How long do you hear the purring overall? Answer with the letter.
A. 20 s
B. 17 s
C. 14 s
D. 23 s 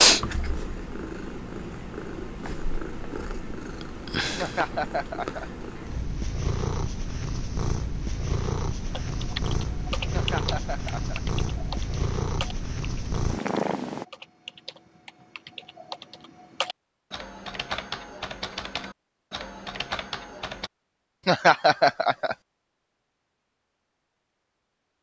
C.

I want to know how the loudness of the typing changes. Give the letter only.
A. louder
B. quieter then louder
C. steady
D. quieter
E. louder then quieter
B.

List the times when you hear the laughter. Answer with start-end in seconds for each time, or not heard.
4.3-5.5, 10.1-11.2, 21.2-22.4.